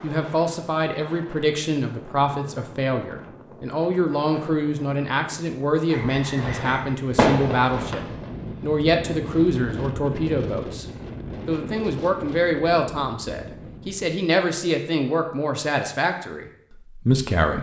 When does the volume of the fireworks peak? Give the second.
7 s.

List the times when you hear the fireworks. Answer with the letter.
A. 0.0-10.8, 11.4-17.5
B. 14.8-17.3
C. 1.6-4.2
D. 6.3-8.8
D.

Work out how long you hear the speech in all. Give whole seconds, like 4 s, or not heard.
17 s.